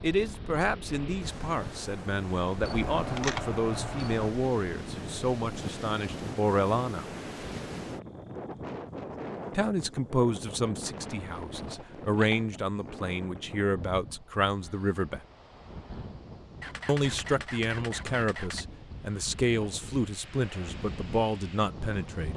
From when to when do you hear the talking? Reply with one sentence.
The talking can be heard from 0.0 to 7.0 s, from 9.6 to 15.2 s and from 16.9 to 22.3 s.